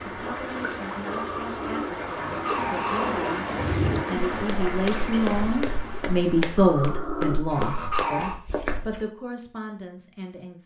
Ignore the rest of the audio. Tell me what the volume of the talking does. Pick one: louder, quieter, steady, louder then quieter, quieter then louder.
louder then quieter.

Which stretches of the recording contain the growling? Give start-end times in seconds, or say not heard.
1.1-3.6, 6.5-8.3.